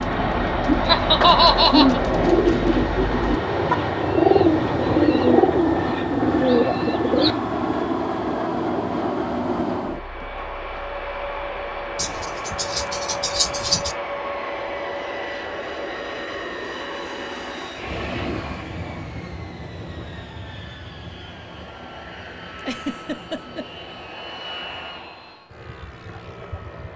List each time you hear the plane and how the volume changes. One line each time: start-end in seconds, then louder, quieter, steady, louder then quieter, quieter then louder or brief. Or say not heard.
0.0-26.9 quieter.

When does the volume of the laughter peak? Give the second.
1 s.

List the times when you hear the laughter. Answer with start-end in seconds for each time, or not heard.
0.8-2.0, 11.9-13.9, 22.6-23.6.